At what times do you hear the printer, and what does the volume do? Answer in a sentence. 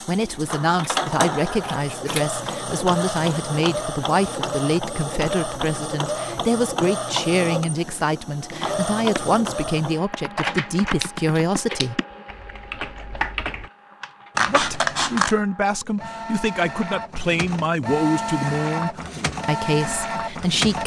The printer can be heard from 0.0 to 20.8 s, getting quieter then louder.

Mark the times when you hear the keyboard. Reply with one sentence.
You can hear the keyboard from 7.8 to 9.4 s and from 10.1 to 13.7 s.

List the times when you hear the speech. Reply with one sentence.
The speech can be heard from 0.1 to 12.0 s and from 14.4 to 20.8 s.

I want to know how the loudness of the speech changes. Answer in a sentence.
The loudness of the speech stays about the same.